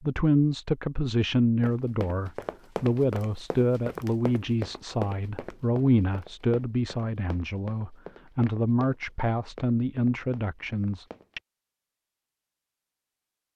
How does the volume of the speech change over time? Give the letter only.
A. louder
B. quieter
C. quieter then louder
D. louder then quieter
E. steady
E.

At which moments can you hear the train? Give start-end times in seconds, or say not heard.
not heard.